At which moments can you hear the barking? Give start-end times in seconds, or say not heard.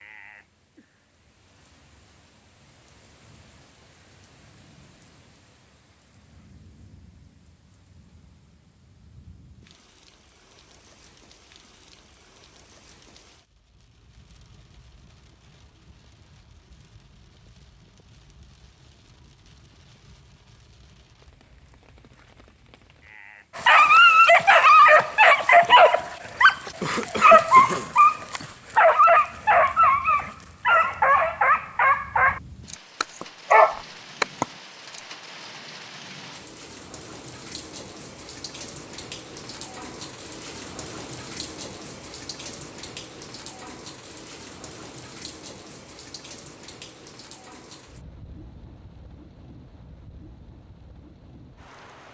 23.6-35.0.